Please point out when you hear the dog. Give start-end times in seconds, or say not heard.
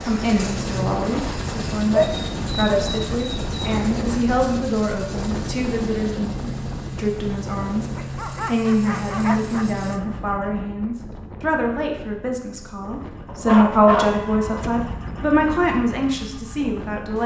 1.9-3.8, 8.0-9.7, 13.2-14.9.